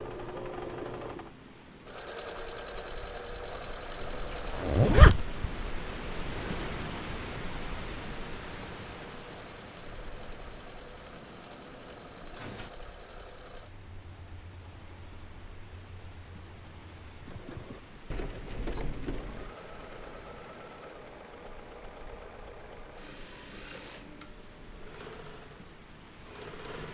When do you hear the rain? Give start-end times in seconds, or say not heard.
0.0-26.8.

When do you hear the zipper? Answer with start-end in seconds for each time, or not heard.
4.0-5.5.